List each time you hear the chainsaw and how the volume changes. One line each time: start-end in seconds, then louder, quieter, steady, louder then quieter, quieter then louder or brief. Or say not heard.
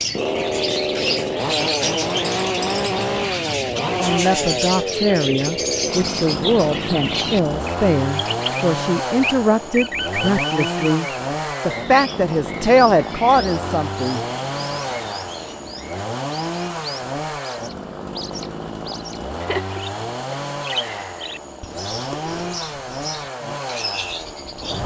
0.0-24.8 quieter.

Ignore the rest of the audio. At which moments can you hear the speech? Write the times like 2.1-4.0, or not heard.
3.8-14.2.